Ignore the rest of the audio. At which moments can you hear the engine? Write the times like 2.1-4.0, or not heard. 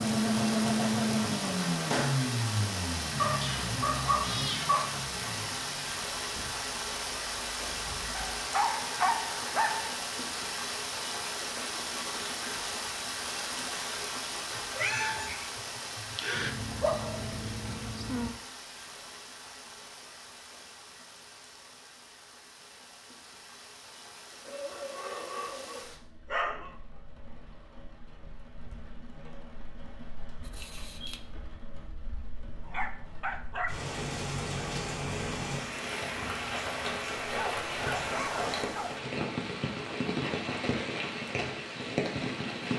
0.0-8.3.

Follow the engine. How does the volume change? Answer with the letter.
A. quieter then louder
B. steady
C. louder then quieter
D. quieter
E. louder
D.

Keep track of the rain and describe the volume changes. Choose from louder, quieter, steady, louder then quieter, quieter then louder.
quieter then louder.